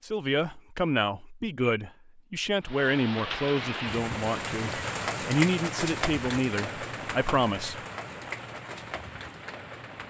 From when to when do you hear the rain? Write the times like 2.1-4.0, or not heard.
2.6-10.0.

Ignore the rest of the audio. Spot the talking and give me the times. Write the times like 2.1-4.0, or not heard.
0.0-7.8.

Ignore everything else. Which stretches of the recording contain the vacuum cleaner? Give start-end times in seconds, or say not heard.
not heard.